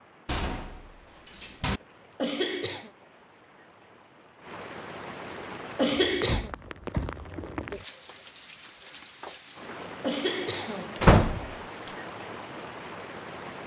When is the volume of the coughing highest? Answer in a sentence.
The loudest moment of the coughing is at 6 seconds.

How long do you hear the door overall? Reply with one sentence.
You can hear the door for 3 seconds altogether.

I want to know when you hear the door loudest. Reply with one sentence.
The loudest moment of the door is at 11 seconds.